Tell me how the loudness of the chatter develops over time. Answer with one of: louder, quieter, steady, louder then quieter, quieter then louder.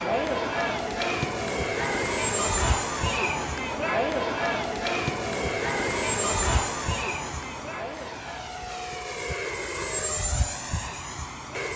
quieter.